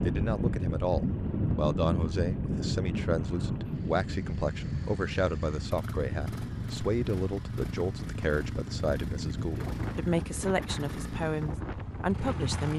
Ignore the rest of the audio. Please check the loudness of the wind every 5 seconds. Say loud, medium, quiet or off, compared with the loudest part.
loud, medium, medium.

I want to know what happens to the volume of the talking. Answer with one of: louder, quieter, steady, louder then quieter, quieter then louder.
steady.